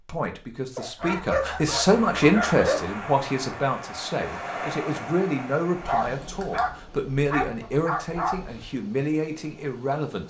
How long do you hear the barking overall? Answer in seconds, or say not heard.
5 s.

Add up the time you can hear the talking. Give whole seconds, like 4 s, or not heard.
10 s.